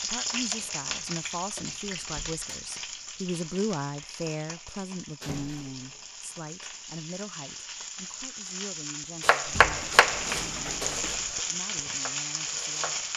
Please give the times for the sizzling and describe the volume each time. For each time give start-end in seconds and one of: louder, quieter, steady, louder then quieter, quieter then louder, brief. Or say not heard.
0.0-13.1 quieter then louder.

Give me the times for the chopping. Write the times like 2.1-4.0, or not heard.
9.2-13.1.